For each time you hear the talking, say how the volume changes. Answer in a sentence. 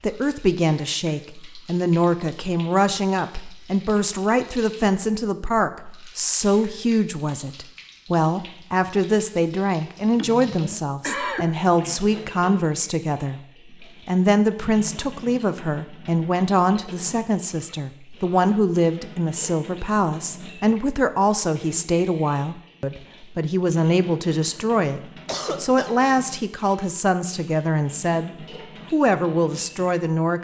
The talking can be heard from 0.0 to 30.3 s, at a steady volume.